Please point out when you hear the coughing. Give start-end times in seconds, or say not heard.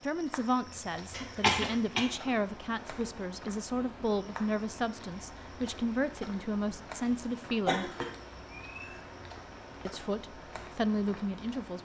1.1-2.0, 7.7-9.0.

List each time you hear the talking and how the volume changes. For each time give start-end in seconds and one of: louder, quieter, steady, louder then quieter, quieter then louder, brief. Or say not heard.
0.0-7.9 steady
9.8-11.7 brief.